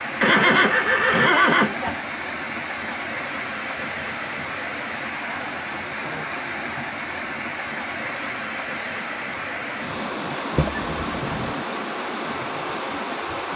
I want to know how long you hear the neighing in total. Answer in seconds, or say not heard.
3 s.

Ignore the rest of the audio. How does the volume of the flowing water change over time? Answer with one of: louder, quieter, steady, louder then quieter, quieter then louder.
steady.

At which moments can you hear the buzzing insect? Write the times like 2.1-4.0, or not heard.
0.0-9.2.